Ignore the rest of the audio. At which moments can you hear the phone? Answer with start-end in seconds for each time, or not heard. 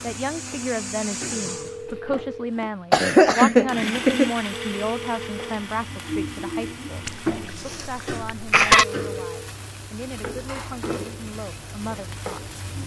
1.4-2.2, 4.5-5.6, 8.8-9.5.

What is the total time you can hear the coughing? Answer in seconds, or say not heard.
3 s.